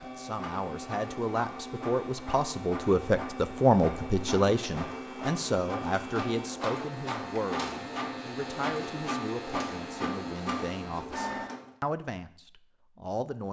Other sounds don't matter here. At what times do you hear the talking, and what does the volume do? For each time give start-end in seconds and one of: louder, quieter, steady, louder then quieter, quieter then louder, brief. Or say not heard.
0.0-13.4 louder then quieter.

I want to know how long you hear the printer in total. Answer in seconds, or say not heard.
12 s.